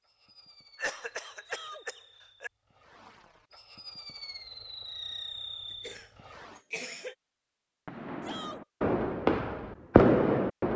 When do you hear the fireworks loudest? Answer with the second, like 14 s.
10 s.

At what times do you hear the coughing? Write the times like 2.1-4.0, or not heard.
0.8-2.5, 5.7-7.2.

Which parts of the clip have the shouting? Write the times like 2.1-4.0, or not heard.
1.4-1.9, 8.2-8.6.